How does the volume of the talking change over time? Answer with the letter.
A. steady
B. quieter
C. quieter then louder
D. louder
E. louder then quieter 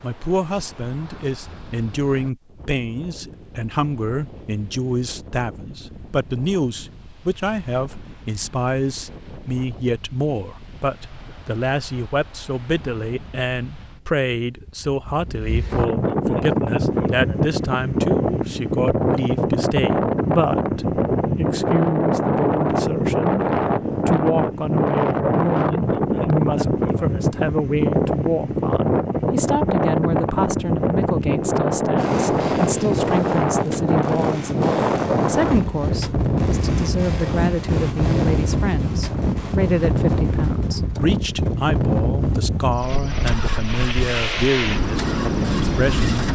A.